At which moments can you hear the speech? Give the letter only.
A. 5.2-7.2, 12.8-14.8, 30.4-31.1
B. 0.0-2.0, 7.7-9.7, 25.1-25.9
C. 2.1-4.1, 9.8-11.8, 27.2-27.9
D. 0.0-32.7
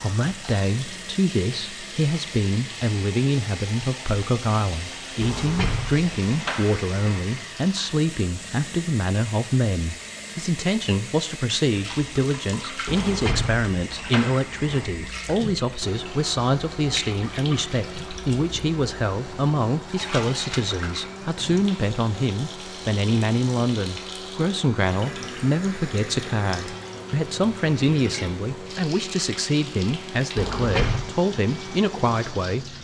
D.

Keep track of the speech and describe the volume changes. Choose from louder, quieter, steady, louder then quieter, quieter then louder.
steady.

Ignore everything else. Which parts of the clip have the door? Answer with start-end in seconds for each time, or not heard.
5.2-7.2, 12.8-14.8, 30.4-31.1.